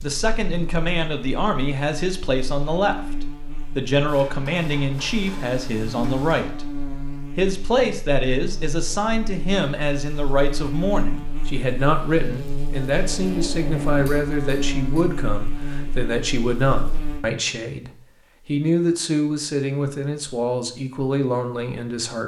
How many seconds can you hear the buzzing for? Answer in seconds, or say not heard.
17 s.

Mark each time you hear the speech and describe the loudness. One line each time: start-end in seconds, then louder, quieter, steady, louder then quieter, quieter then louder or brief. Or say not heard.
0.0-22.2 steady.